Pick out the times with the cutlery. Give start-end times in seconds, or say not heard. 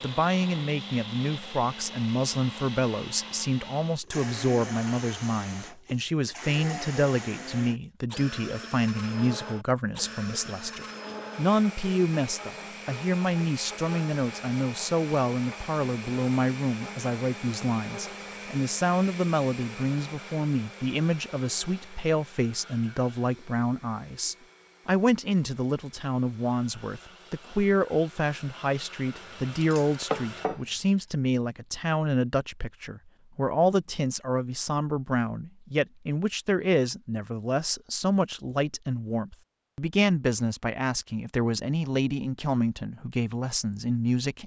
29.6-31.1.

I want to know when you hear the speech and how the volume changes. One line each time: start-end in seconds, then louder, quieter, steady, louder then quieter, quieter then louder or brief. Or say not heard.
0.0-44.4 steady.